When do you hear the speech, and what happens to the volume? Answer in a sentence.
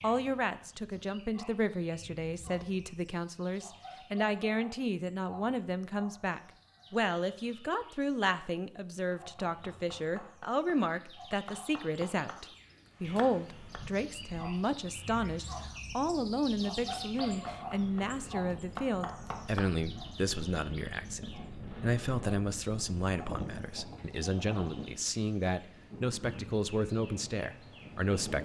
You can hear the speech from 0.0 to 28.4 s, at a steady volume.